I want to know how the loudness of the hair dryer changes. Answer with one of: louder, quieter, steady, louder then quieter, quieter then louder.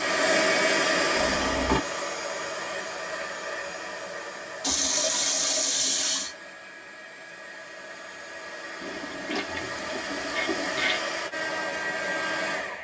quieter then louder.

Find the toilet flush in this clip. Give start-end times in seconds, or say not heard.
1.1-1.8, 4.6-6.3, 8.8-11.1.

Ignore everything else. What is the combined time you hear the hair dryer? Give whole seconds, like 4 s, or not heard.
13 s.